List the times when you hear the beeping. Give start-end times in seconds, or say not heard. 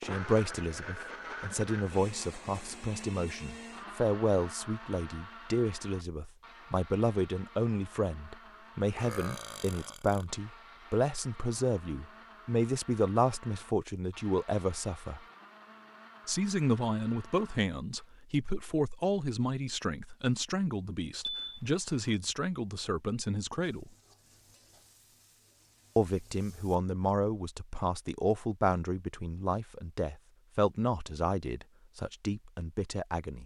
21.2-22.1.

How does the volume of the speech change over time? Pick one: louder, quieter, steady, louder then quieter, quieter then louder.
steady.